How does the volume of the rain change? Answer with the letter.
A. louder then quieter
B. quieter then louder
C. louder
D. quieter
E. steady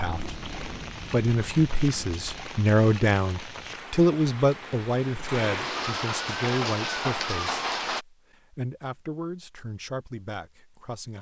C.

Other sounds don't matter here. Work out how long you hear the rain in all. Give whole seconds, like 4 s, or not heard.
8 s.